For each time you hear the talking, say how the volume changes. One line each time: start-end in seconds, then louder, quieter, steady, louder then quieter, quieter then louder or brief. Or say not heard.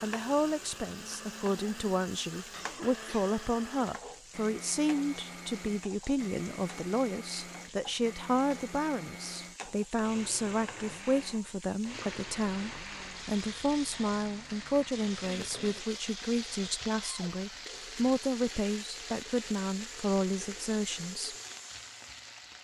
0.0-21.4 steady.